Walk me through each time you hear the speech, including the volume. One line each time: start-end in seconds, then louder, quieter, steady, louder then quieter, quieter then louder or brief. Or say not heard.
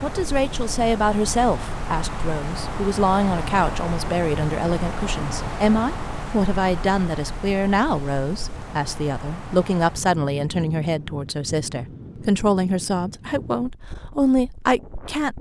0.0-15.3 steady.